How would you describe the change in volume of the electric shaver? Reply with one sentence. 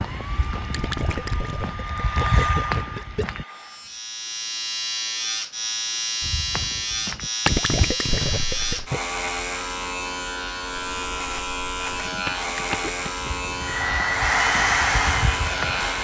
The loudness of the electric shaver stays about the same.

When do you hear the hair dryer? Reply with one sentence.
The hair dryer can be heard from 0.0 to 3.9 s and from 13.6 to 15.9 s.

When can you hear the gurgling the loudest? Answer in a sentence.
The volume of the gurgling peaks at 8 seconds.